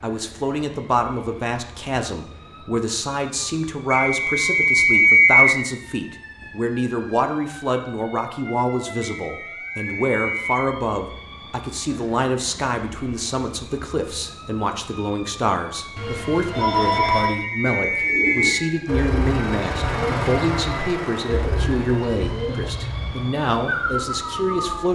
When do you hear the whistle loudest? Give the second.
5 s.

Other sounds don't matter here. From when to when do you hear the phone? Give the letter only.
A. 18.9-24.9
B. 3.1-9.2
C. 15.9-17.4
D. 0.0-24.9
C.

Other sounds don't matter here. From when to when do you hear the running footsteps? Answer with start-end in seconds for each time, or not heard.
not heard.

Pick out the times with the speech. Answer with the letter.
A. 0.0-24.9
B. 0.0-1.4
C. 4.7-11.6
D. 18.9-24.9
A.